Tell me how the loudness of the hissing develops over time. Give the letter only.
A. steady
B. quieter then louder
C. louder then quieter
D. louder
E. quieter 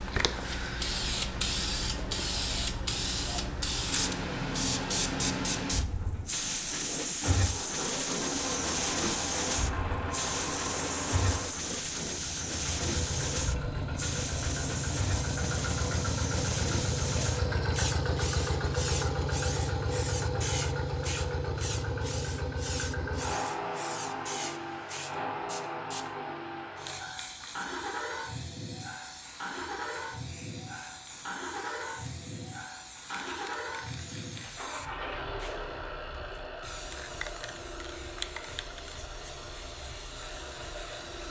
E.